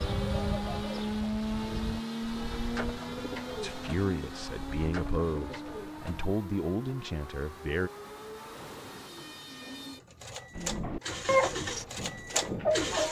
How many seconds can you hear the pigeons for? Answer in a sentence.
You can hear the pigeons for 9 seconds altogether.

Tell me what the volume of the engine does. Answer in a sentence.
The loudness of the engine goes down, then up.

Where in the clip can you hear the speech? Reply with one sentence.
You can hear the speech from 3.6 to 7.9 s.